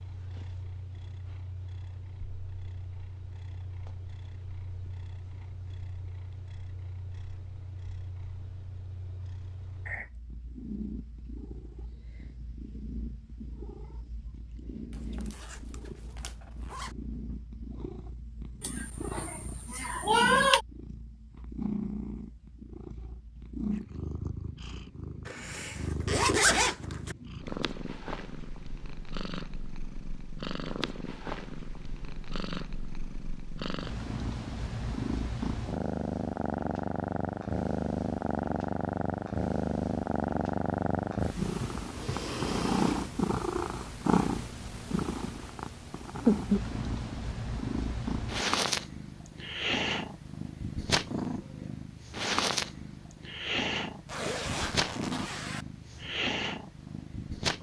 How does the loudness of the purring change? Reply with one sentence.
The volume of the purring goes up.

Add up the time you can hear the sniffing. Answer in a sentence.
The sniffing can be heard for 2 seconds in total.